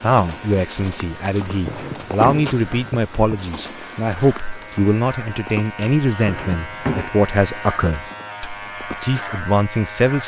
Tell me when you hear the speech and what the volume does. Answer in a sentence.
You can hear the speech from 0.0 to 10.2 s, at a steady volume.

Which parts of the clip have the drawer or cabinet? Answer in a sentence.
You can hear the drawer or cabinet from 1.6 to 3.4 s and from 6.2 to 7.2 s.